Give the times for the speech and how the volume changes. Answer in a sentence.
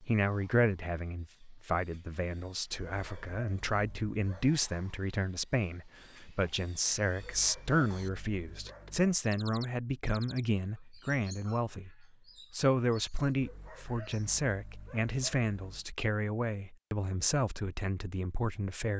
The speech can be heard from 0.0 to 18.9 s, at a steady volume.